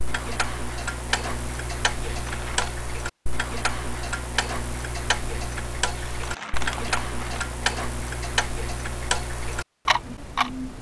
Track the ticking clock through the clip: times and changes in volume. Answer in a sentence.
You can hear the ticking clock from 0.0 to 10.7 s, at a steady volume.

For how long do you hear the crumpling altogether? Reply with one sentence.
The crumpling can be heard for 2 seconds in total.